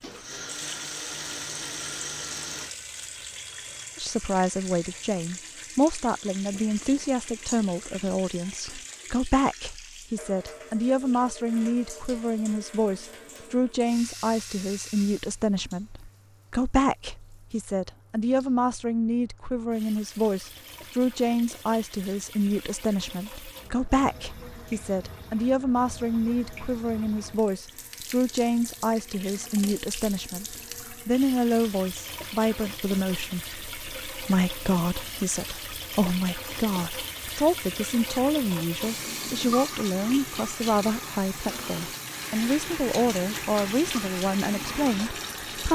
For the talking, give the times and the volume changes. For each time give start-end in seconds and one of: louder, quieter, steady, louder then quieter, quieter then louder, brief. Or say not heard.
4.0-45.6 steady.